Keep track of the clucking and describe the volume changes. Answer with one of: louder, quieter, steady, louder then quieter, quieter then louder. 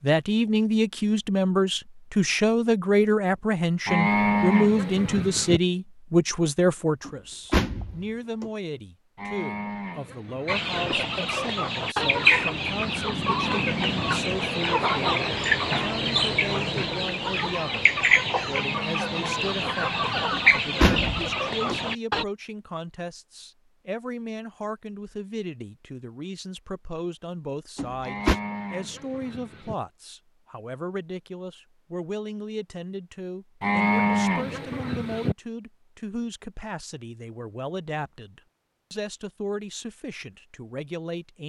steady.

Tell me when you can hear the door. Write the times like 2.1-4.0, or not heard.
7.0-8.5, 20.3-21.8, 27.8-28.4.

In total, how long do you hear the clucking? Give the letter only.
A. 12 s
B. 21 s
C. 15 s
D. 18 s
A.